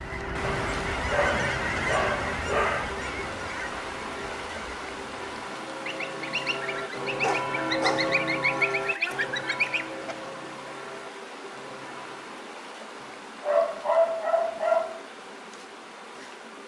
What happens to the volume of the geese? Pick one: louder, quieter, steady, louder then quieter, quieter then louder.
quieter then louder.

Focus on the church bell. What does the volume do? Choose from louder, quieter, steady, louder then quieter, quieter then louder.
louder then quieter.